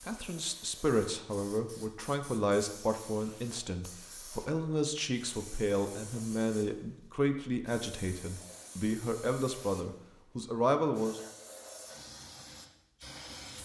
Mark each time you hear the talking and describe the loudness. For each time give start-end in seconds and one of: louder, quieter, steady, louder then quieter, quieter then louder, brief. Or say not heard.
0.1-11.2 steady.